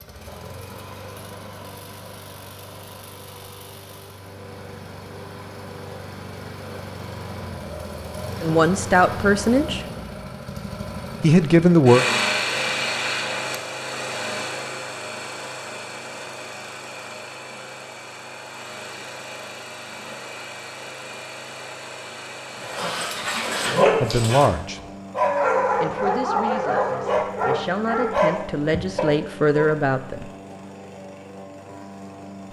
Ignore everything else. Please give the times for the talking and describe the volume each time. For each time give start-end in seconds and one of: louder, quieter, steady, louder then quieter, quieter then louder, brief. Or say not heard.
8.4-9.8 brief
11.2-12.1 brief
24.0-24.8 brief
25.8-30.3 louder.